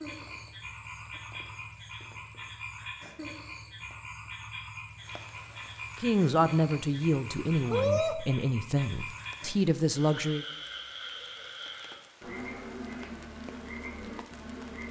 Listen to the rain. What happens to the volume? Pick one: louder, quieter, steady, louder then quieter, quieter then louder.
louder then quieter.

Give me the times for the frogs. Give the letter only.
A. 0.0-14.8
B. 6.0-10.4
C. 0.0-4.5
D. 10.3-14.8
A.